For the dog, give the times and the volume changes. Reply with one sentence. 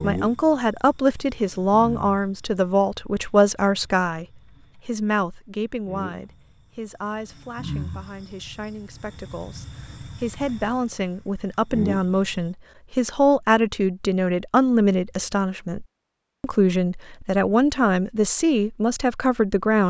You can't hear the dog here.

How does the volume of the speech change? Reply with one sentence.
The loudness of the speech goes down, then up.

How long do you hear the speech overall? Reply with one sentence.
The speech can be heard for 20 seconds in total.